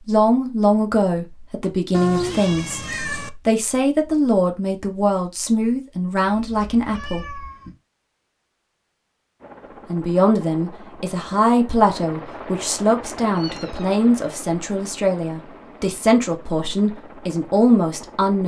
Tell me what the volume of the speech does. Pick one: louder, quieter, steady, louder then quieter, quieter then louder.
steady.